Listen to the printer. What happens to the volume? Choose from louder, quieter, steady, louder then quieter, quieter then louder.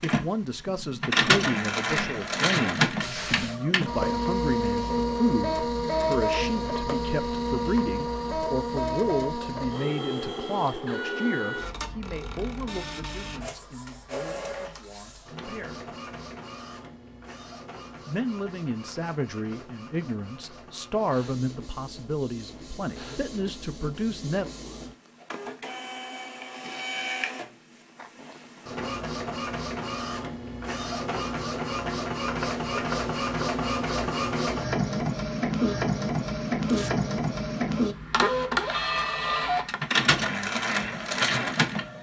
quieter then louder.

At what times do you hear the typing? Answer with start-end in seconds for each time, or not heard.
not heard.